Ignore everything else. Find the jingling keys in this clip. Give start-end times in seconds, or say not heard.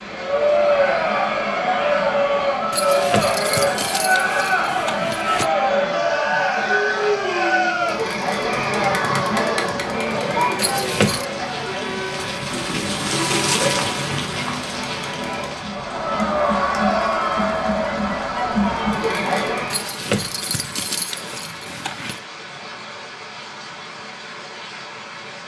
2.7-5.5, 10.6-11.2, 19.7-22.2.